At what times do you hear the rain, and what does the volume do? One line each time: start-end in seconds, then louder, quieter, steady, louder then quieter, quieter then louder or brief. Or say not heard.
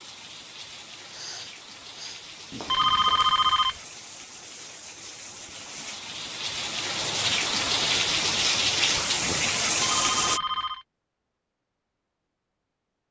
0.0-10.4 louder.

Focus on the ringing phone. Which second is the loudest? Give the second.
3 s.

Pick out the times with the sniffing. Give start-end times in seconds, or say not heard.
1.1-2.2.